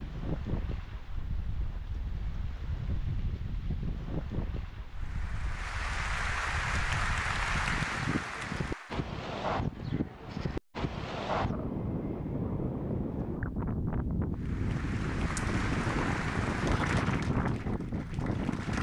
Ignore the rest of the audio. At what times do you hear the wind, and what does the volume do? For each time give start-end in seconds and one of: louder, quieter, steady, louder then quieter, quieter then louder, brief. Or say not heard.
0.0-18.7 louder.